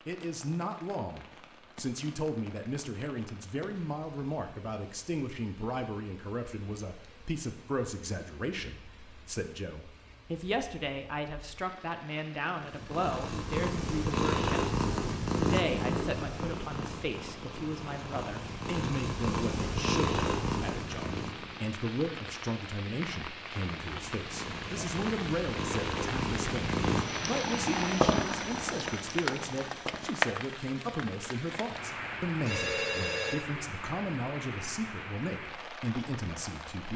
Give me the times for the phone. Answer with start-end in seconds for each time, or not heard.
32.5-33.4.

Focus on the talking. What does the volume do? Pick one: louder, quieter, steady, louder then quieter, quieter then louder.
steady.